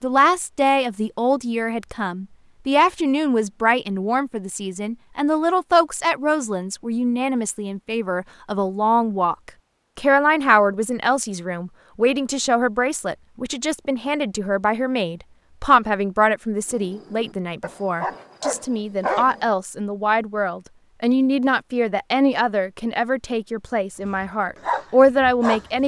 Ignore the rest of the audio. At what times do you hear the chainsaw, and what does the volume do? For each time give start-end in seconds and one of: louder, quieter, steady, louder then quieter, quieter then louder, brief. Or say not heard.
not heard.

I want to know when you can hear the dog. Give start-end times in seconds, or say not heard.
16.7-19.5, 24.1-25.8.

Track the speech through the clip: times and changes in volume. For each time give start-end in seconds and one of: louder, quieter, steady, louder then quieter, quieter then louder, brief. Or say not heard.
0.0-25.8 steady.